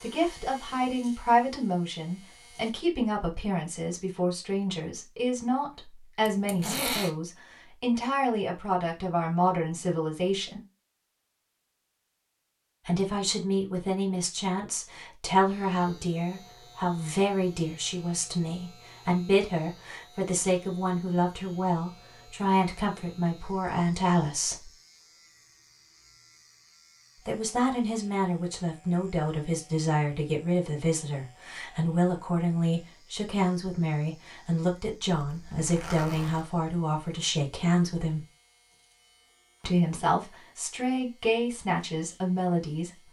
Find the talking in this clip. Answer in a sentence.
You can hear the talking from 0.0 to 10.7 s, from 12.8 to 24.7 s, from 27.2 to 38.2 s and from 39.6 to 42.9 s.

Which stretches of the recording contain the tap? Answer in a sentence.
You can't hear the tap here.